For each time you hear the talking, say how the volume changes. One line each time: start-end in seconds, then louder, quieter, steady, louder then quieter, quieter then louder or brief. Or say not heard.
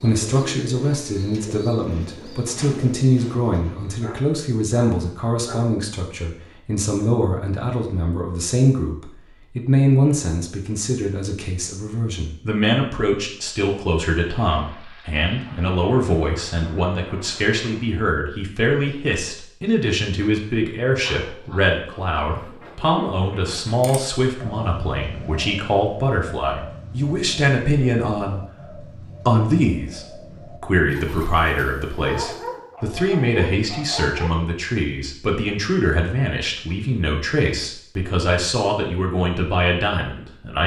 0.0-40.6 steady.